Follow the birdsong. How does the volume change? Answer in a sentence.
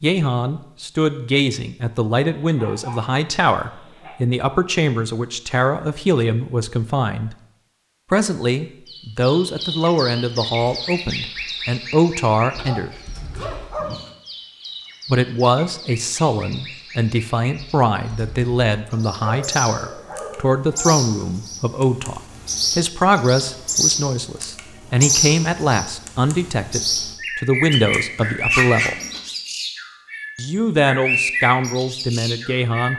The loudness of the birdsong goes down, then up.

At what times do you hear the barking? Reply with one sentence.
You can hear the barking from 2.2 to 4.2 s, from 12.6 to 14.1 s, from 18.9 to 20.9 s and from 27.7 to 29.2 s.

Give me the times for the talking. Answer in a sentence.
The talking can be heard from 0.0 to 7.3 s, from 8.1 to 12.9 s, from 15.1 to 28.9 s and from 30.4 to 32.9 s.